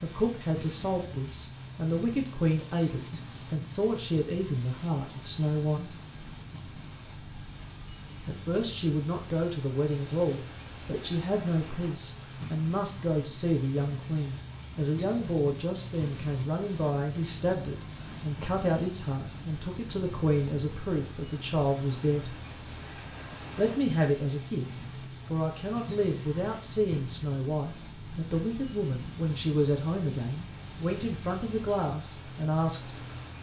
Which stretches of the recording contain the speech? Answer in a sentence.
You can hear the speech from 0.0 to 6.0 s, from 8.2 to 22.4 s, from 23.6 to 24.6 s and from 25.2 to 33.0 s.